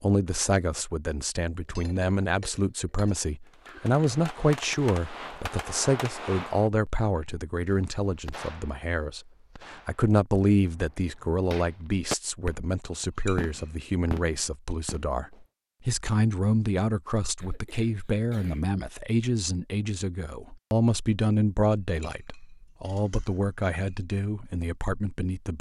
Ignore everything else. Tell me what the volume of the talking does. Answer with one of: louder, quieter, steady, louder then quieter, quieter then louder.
steady.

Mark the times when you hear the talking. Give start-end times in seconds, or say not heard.
0.0-25.5.